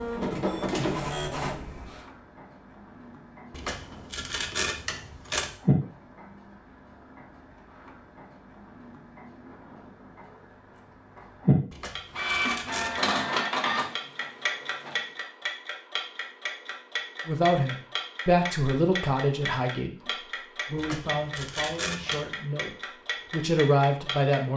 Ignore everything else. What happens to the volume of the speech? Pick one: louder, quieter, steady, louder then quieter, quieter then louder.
quieter then louder.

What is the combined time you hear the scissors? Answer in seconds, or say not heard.
5 s.